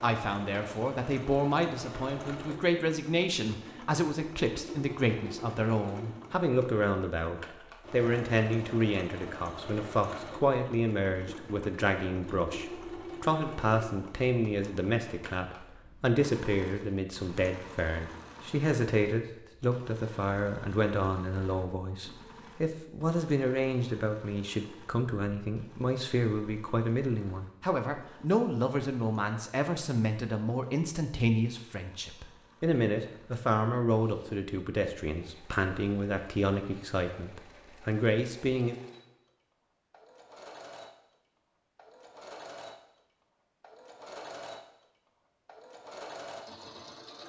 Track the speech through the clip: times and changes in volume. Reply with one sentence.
The speech can be heard from 0.0 to 38.8 s, at a steady volume.